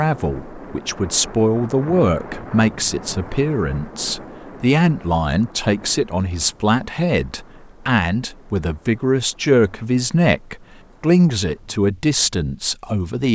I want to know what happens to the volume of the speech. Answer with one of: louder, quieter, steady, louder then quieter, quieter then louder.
steady.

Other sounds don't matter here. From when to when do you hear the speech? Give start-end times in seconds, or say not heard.
0.0-13.3.